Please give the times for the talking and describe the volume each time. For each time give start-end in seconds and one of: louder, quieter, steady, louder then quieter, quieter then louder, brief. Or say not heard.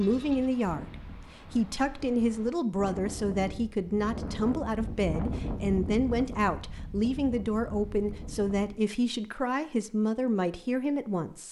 0.0-11.4 steady.